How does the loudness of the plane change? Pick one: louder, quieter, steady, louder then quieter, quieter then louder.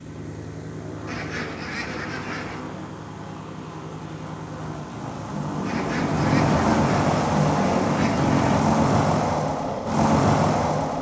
louder.